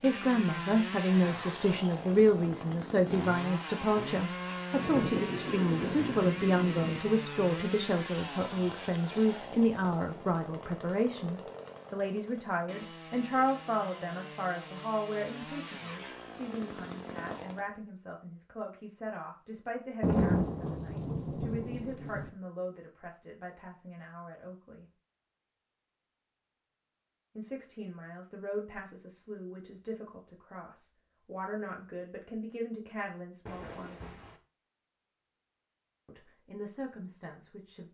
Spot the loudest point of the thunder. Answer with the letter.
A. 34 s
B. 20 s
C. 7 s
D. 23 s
B.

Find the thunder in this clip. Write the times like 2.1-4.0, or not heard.
4.8-7.0, 20.0-22.3, 33.5-34.4.